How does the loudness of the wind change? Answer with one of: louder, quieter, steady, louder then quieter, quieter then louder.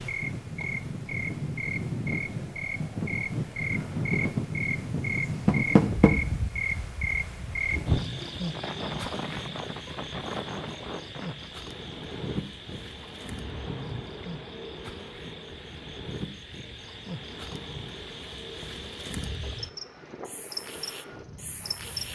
quieter.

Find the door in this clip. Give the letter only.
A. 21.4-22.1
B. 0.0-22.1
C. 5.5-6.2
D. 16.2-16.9
C.